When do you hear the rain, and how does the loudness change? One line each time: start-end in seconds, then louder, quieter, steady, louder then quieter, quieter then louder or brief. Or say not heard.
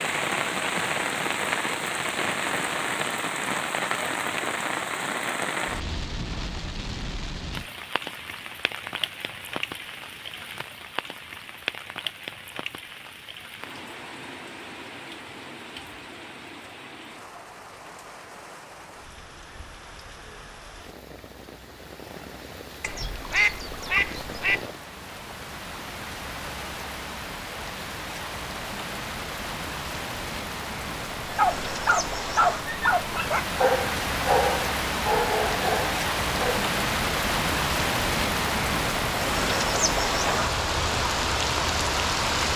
0.0-42.5 quieter then louder.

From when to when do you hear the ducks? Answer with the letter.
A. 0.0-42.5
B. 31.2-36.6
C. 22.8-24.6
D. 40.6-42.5
C.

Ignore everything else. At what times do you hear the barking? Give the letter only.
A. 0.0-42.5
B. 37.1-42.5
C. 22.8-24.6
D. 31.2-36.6
D.